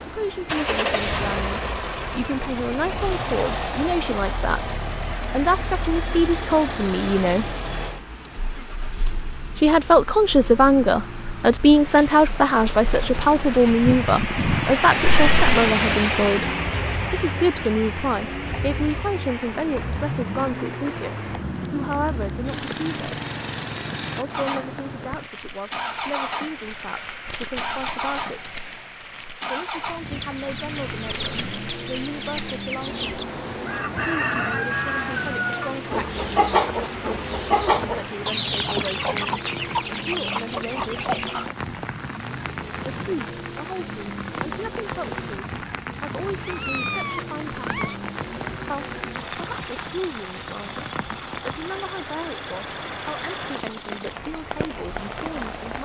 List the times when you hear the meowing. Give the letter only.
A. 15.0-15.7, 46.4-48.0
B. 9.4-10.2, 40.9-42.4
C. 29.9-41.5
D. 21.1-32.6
A.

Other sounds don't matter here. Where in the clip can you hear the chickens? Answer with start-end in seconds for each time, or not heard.
29.9-41.5.